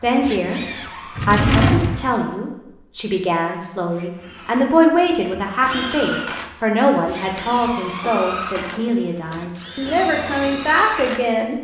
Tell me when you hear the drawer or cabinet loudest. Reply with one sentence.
The loudest moment of the drawer or cabinet is at 2 seconds.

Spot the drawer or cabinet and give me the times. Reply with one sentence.
You can hear the drawer or cabinet from 1.1 to 2.1 s and from 7.3 to 8.9 s.